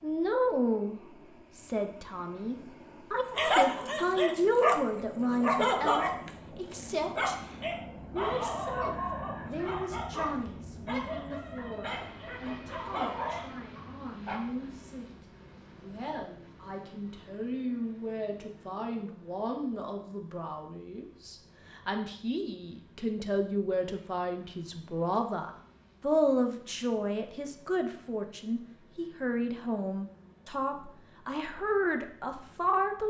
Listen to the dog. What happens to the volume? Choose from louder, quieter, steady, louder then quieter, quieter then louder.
quieter.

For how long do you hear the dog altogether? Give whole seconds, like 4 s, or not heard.
11 s.